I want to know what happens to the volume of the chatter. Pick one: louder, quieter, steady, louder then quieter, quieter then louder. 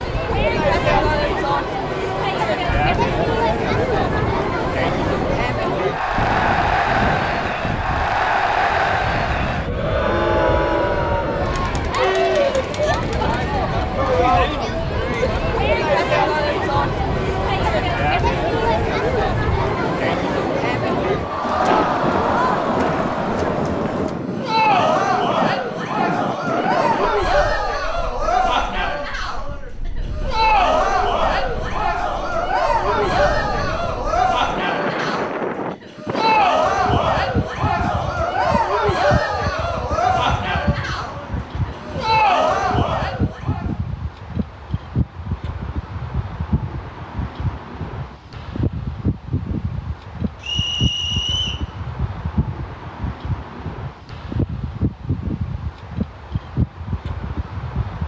steady.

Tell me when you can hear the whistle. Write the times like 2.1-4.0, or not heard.
50.4-51.6.